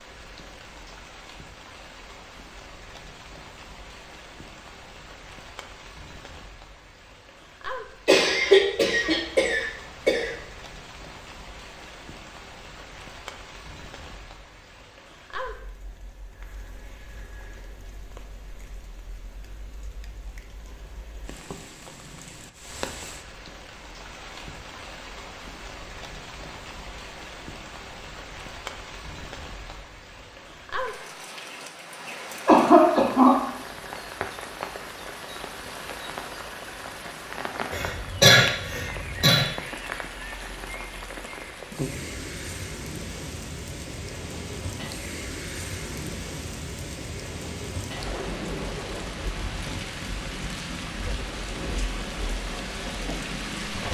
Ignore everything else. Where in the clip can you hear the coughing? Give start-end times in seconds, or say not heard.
8.1-10.3, 32.5-33.4, 37.7-39.5.